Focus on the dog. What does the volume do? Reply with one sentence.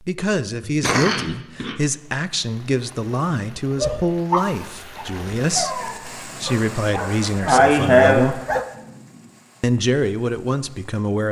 The volume of the dog goes down, then up.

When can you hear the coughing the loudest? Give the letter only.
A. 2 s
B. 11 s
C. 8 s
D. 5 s
C.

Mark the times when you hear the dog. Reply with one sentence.
The dog can be heard from 3.8 to 8.7 s.